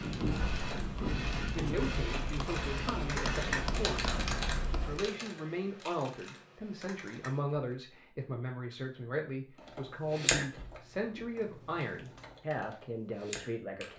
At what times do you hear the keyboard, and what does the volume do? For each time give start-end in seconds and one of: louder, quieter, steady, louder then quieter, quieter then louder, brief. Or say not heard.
0.0-7.8 louder then quieter
9.6-13.9 quieter then louder.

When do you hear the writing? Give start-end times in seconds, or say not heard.
0.0-5.1.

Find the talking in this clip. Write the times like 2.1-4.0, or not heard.
1.4-13.9.